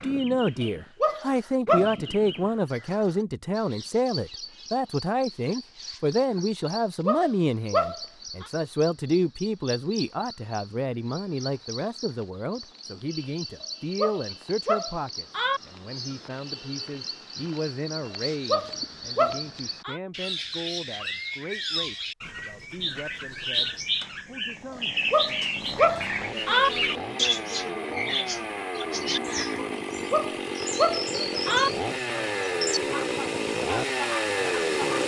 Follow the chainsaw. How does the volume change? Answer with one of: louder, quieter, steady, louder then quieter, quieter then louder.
louder.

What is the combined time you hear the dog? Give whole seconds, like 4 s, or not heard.
9 s.